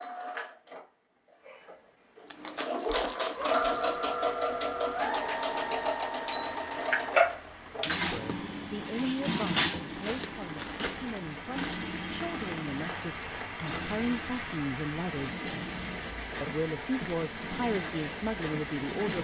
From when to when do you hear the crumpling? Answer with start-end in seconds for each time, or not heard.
2.2-4.0, 9.9-11.9.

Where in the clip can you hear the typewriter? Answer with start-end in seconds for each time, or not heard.
not heard.